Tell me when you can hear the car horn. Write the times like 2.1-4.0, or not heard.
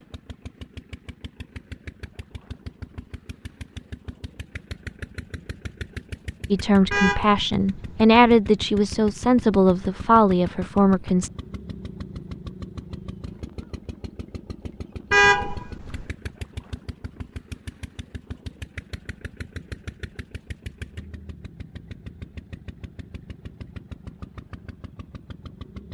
6.9-8.2, 15.1-16.1.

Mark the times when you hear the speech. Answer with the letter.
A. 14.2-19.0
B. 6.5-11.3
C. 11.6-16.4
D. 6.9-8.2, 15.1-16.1
B.